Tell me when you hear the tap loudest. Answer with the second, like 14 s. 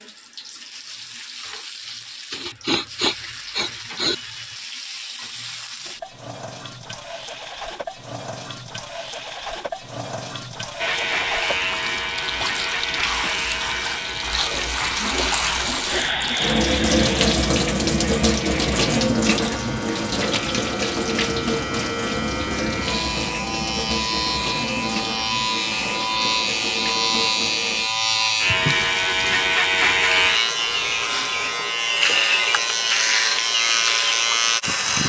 17 s.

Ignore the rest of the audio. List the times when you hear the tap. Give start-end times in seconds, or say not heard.
0.0-29.5.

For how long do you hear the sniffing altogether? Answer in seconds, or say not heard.
4 s.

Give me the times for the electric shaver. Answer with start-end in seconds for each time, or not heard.
10.8-35.0.